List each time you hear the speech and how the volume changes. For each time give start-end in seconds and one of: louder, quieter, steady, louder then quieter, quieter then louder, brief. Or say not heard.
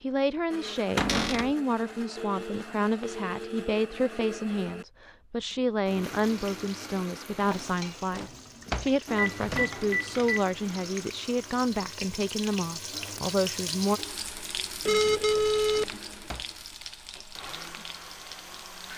0.0-14.0 steady.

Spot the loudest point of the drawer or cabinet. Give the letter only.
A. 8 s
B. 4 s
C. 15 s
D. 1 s
D.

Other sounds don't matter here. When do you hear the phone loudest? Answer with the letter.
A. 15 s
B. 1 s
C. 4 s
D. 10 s
A.